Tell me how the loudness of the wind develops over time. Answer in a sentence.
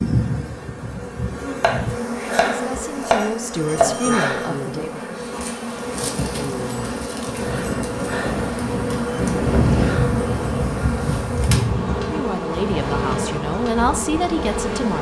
The loudness of the wind goes up, then down.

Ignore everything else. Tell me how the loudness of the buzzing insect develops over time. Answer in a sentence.
The volume of the buzzing insect stays about the same.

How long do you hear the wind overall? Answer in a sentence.
The wind can be heard for 9 seconds in total.